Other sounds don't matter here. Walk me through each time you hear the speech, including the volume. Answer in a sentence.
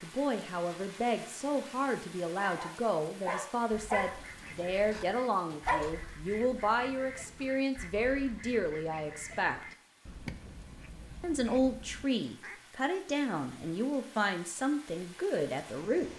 The speech can be heard from 0.0 to 9.7 s, at a steady volume; and from 11.2 to 16.1 s, at a steady volume.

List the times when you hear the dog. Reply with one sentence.
The dog can be heard from 2.4 to 6.0 s.